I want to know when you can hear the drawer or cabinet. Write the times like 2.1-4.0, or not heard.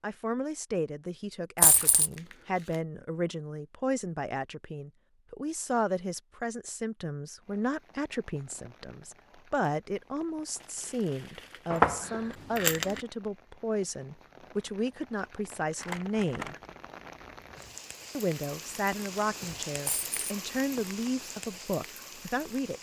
not heard.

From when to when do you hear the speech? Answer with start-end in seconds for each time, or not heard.
0.0-16.6, 18.1-22.7.